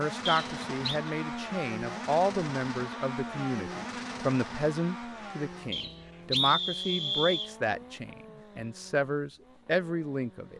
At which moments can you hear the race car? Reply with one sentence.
The race car can be heard from 0.0 to 10.5 s.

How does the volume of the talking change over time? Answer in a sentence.
The loudness of the talking stays about the same.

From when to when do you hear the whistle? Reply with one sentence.
The whistle can be heard from 0.2 to 1.0 s and from 5.7 to 7.5 s.